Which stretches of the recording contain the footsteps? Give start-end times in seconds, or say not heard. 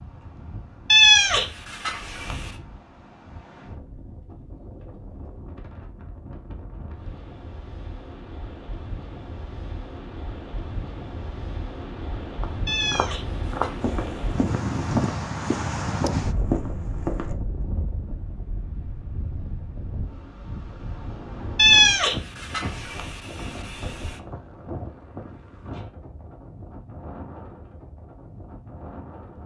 12.4-17.4.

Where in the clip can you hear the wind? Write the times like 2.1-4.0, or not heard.
0.0-29.4.